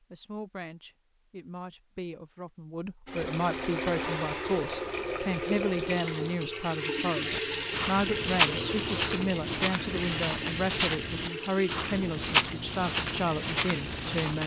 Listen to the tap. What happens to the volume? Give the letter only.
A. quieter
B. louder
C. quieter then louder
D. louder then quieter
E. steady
A.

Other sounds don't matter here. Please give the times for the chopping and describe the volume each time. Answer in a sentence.
You can't hear the chopping here.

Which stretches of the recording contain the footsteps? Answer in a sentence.
You can hear the footsteps from 7.3 to 14.4 s.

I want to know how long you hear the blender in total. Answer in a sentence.
You can hear the blender for 3 seconds altogether.